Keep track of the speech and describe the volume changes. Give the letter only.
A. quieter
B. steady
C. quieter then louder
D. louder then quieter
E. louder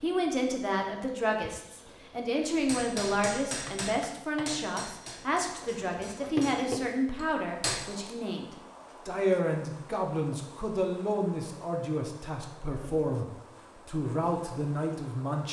B.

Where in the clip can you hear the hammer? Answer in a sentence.
The hammer can be heard from 2.5 to 7.8 s.